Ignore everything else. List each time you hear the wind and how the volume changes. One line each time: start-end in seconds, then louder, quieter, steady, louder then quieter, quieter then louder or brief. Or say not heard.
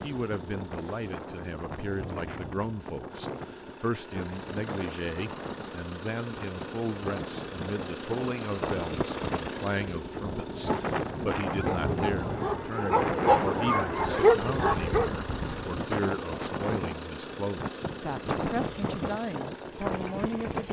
0.0-20.6 louder.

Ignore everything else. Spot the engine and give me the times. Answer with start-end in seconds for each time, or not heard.
0.0-20.6.